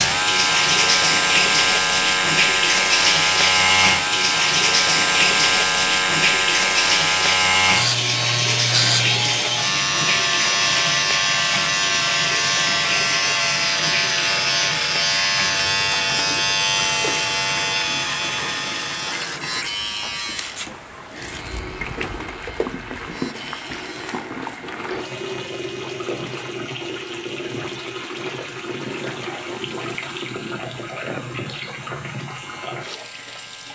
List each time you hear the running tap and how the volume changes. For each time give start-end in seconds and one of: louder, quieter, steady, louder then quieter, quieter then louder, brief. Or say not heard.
0.0-33.6 quieter.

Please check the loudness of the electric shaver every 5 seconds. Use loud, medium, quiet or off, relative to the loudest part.
loud, loud, loud, loud, quiet, quiet, quiet.